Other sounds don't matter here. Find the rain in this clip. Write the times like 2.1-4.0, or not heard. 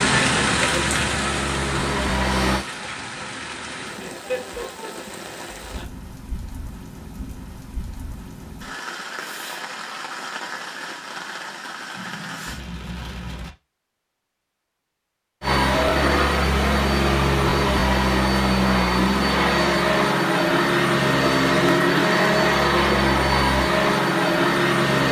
0.0-13.6.